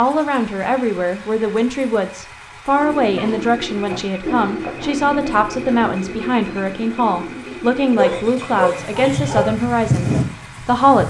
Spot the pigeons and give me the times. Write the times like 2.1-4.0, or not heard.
2.8-8.1.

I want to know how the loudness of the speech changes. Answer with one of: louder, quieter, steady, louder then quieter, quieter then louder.
steady.